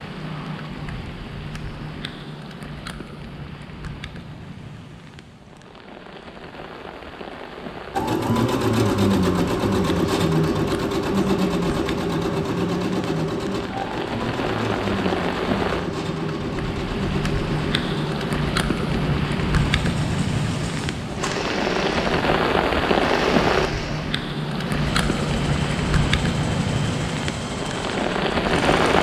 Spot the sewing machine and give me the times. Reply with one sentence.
You can hear the sewing machine from 7.9 to 28.9 s.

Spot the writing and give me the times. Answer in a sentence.
The writing can't be heard in this clip.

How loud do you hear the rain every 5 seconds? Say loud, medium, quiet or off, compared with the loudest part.
quiet, quiet, medium, loud, loud, loud.